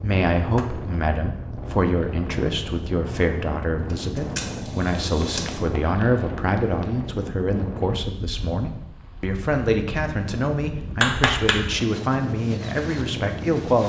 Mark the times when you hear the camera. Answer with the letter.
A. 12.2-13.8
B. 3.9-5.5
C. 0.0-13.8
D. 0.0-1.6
B.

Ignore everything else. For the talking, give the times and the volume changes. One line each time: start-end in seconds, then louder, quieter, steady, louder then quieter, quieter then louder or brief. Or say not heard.
0.0-13.8 steady.